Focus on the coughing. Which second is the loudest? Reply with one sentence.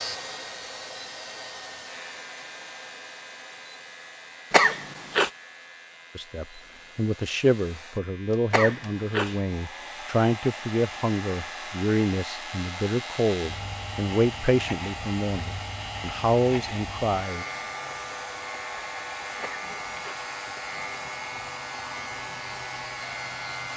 The loudest moment of the coughing is at 5 seconds.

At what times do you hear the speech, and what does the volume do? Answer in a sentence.
You can hear the speech from 6.2 to 17.4 s, at a steady volume.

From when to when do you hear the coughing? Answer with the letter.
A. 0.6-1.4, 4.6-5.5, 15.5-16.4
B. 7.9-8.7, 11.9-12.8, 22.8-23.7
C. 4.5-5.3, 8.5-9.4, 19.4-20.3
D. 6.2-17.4
C.